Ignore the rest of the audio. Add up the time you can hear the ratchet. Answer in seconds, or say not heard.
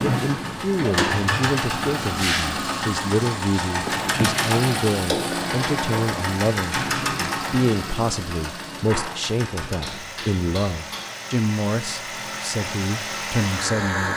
not heard.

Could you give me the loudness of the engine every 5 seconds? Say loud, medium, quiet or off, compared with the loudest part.
loud, loud, medium.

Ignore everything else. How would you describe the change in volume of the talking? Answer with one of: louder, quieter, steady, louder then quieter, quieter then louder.
steady.